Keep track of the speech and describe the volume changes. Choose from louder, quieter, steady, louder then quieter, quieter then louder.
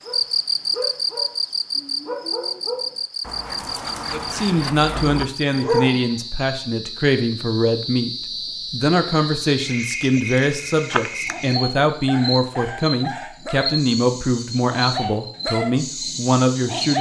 steady.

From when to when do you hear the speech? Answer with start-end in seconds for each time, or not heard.
4.1-16.9.